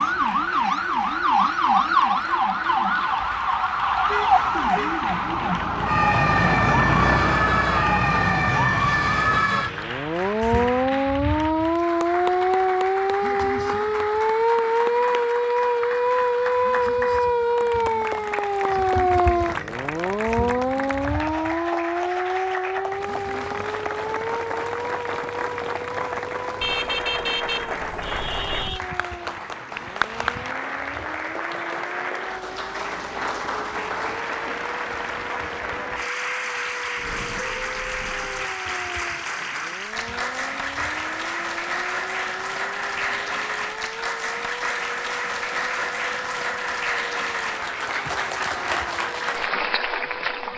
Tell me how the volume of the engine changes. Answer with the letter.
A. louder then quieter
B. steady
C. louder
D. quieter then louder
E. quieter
A.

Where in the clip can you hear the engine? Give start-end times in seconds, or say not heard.
5.0-9.4.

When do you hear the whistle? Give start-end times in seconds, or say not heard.
not heard.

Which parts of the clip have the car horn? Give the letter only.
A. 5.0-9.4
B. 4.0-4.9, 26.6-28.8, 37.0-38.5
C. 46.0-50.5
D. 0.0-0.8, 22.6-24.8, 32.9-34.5
B.